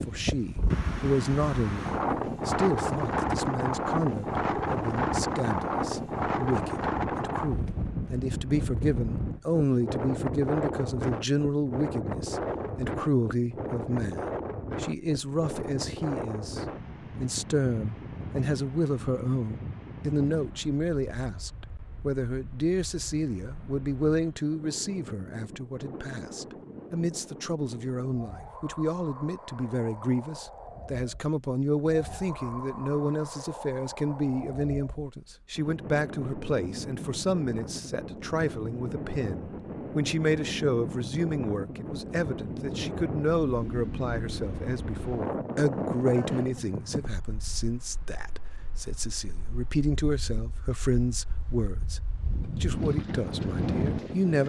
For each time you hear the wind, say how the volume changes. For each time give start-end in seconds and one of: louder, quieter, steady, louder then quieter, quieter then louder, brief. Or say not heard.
0.0-54.4 quieter then louder.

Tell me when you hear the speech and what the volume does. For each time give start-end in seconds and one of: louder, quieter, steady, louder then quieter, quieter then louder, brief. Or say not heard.
0.0-52.0 steady
52.6-54.4 brief.